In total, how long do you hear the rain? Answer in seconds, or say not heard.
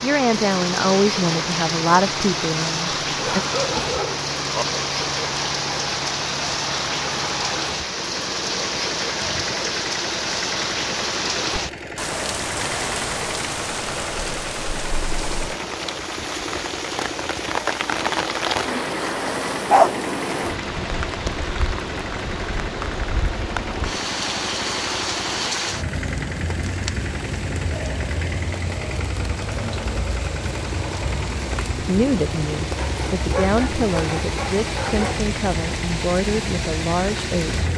38 s.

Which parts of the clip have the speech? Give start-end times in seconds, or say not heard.
0.0-3.4, 31.8-37.7.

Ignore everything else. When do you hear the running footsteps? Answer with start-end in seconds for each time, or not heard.
not heard.